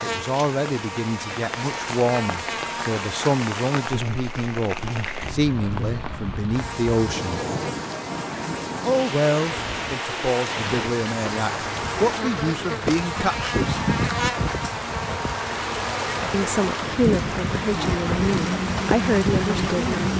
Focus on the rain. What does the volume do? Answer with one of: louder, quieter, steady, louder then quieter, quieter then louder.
louder.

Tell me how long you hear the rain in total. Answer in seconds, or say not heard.
20 s.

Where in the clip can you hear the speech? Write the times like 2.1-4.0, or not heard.
0.0-7.4, 8.8-13.8, 16.3-19.9.